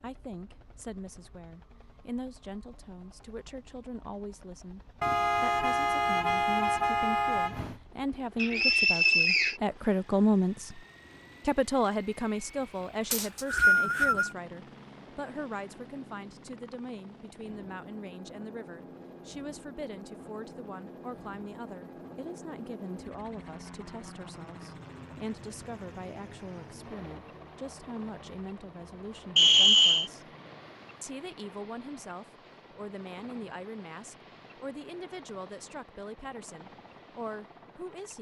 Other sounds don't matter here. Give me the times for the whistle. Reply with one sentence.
The whistle can be heard from 8.3 to 9.6 s, from 13.1 to 14.3 s and from 29.4 to 30.1 s.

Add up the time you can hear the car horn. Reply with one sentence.
The car horn can be heard for 3 seconds in total.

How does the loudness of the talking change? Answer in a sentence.
The loudness of the talking goes up, then down.